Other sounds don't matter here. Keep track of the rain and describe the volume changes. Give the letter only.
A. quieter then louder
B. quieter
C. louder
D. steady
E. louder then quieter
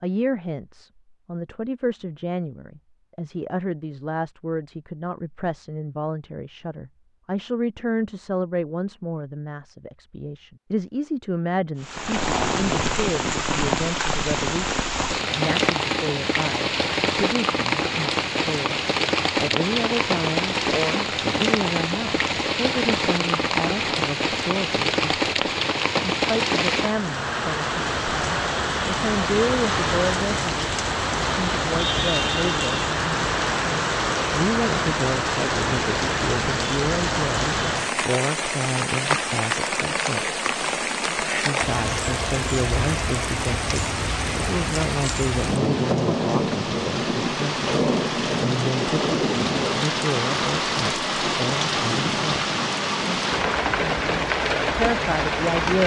D.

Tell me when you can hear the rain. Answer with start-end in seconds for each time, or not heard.
11.8-55.8.